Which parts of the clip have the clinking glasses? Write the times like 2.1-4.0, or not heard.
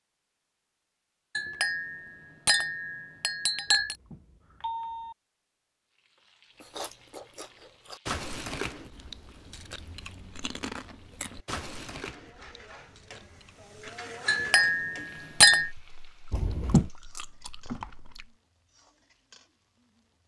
1.4-4.0, 14.2-15.7.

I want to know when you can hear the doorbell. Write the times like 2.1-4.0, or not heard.
3.7-5.2, 16.3-16.9.